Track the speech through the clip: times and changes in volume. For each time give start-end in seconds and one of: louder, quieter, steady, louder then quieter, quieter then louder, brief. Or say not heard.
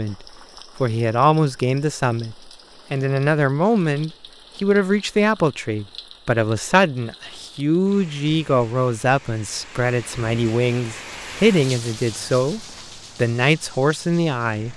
0.0-14.7 steady.